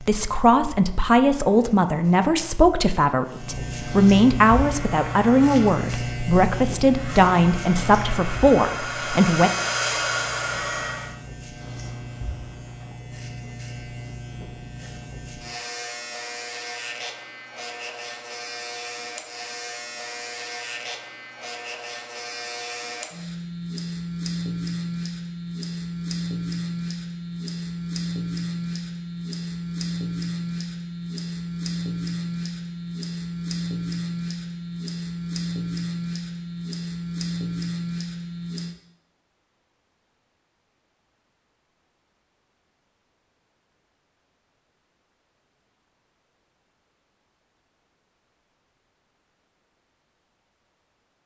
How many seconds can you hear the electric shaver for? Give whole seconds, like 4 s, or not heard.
39 s.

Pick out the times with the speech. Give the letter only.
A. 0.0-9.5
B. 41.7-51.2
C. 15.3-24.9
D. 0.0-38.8
A.